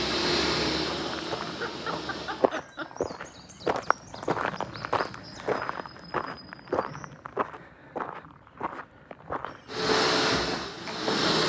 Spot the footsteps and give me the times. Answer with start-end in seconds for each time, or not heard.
1.1-11.2.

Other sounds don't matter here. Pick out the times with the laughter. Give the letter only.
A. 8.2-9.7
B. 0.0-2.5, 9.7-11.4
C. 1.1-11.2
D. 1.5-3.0
D.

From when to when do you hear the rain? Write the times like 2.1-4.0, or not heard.
not heard.